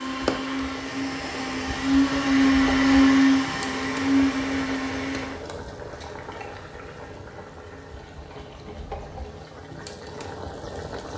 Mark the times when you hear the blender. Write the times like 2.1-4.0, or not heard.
0.0-5.5.